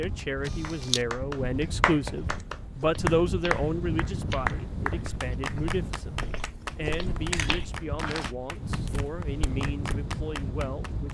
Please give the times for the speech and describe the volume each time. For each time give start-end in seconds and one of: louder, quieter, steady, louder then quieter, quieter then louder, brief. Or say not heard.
0.0-11.1 quieter.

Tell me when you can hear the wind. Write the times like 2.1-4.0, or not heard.
0.0-11.1.